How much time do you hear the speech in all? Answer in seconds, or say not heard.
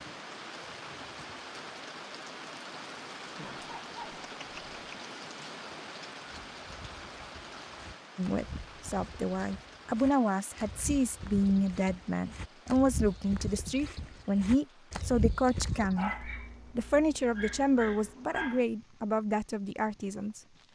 12 s.